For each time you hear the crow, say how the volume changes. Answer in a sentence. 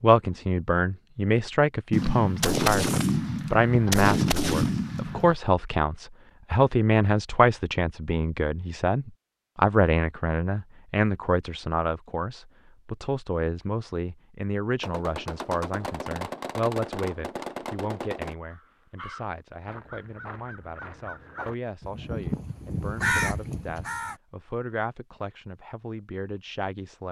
The crow can be heard from 18.5 to 24.2 s, getting louder.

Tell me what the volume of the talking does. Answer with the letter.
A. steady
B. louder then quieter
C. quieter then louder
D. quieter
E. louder
D.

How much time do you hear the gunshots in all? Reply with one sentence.
The gunshots can be heard for 7 seconds in total.